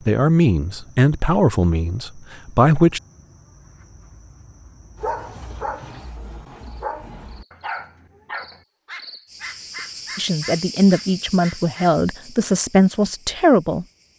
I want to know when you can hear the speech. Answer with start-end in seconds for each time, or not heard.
0.1-3.0, 10.2-13.8.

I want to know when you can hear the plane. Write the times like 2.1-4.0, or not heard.
not heard.